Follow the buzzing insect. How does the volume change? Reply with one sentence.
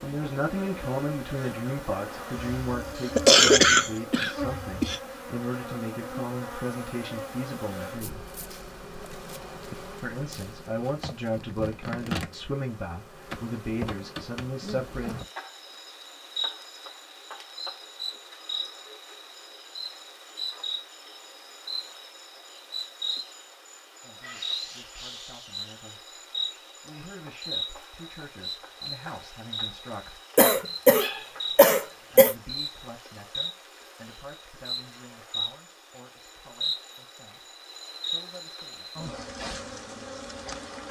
The loudness of the buzzing insect stays about the same.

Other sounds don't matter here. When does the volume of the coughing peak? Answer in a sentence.
The volume of the coughing peaks at 3 seconds.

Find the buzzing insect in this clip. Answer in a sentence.
You can hear the buzzing insect from 0.0 to 40.8 s.